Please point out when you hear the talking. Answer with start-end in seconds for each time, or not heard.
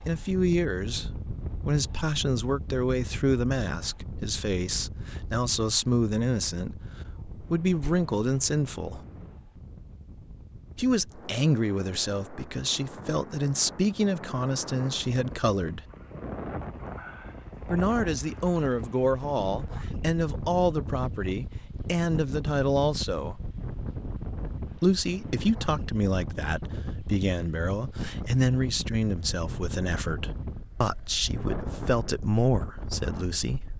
0.1-9.0, 10.8-15.8, 17.6-23.4, 24.8-33.7.